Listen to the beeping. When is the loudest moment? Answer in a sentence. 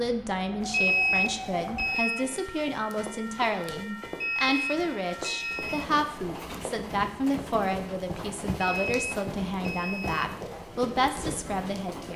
The loudest moment of the beeping is at 1 second.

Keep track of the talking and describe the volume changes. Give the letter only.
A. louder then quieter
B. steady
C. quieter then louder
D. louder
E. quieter
B.